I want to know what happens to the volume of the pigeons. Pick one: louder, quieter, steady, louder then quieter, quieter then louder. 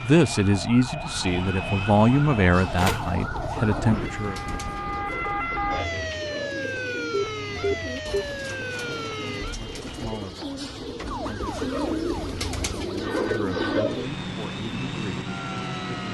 louder.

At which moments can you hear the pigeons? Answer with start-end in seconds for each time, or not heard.
2.5-14.1.